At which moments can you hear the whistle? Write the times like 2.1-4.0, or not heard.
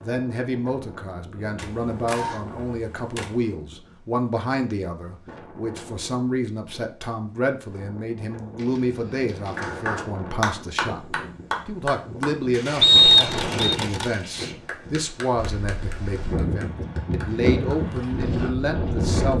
12.8-13.8.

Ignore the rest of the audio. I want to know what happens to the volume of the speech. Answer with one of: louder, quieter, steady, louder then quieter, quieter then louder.
steady.